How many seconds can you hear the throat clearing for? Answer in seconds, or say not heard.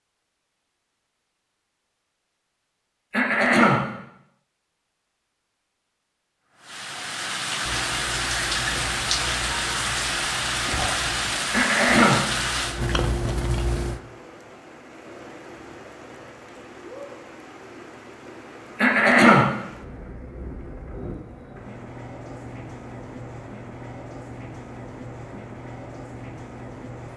2 s.